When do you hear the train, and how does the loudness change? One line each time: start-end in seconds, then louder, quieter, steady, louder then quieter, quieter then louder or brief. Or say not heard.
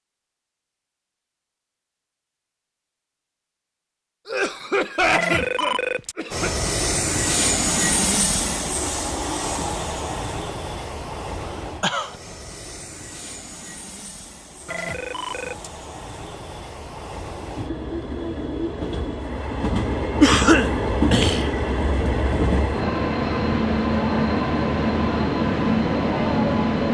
6.3-26.8 quieter then louder.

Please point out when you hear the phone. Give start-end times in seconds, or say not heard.
5.1-6.2, 14.7-15.7.